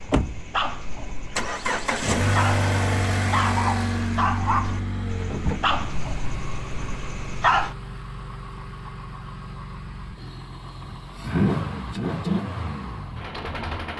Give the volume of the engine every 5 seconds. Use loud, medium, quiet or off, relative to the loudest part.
loud, medium, loud.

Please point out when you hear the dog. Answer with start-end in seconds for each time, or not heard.
0.0-7.8.